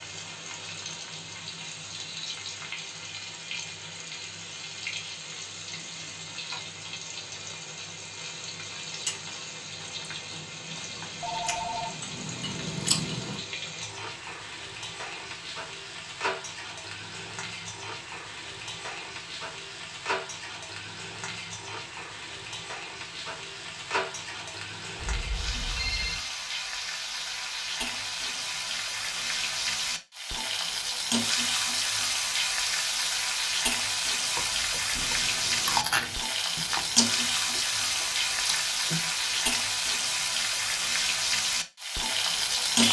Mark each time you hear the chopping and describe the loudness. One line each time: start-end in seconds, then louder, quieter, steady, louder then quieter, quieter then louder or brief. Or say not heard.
not heard.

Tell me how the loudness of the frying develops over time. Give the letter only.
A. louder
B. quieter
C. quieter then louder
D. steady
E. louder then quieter
A.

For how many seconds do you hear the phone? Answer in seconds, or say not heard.
3 s.